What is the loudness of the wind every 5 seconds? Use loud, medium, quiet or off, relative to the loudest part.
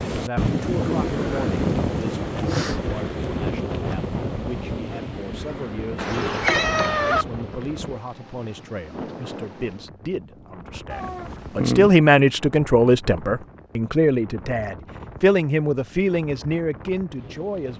loud, medium, quiet, quiet.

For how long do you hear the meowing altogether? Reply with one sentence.
The meowing can be heard for 2 seconds in total.